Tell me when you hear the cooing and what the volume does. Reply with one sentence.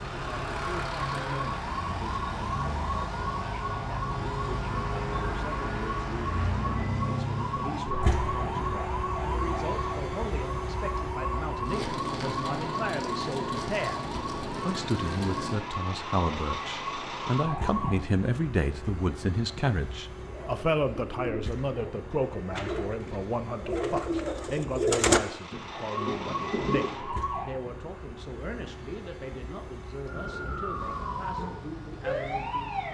The cooing can be heard from 20.1 to 26.9 s, getting louder then quieter.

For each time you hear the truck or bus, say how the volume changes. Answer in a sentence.
You can hear the truck or bus from 0.0 to 32.8 s, getting quieter.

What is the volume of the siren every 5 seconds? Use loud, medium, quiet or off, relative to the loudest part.
loud, loud, loud, loud, off, loud, loud.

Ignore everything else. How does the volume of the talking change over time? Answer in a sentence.
The loudness of the talking goes up, then down.